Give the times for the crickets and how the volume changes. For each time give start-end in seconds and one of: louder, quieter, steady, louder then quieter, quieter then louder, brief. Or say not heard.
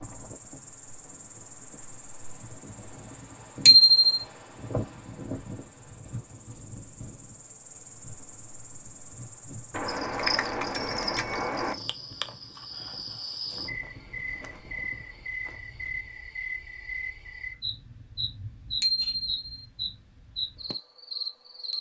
0.0-21.7 louder.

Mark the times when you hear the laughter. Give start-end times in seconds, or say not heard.
not heard.